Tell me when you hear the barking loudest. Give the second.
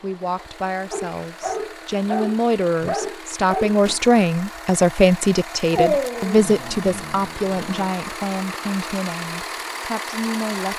6 s.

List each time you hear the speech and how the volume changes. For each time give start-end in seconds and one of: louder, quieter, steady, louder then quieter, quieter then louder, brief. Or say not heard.
0.0-10.7 louder then quieter.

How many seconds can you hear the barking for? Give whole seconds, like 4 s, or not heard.
5 s.